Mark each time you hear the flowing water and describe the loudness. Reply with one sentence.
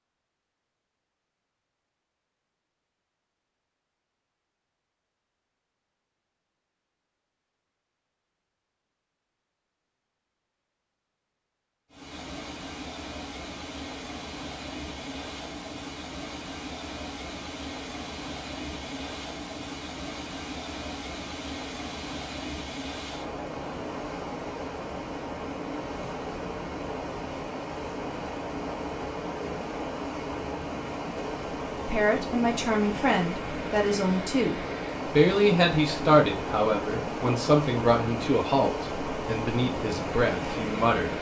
The flowing water can be heard from 11.9 to 41.1 s, getting louder.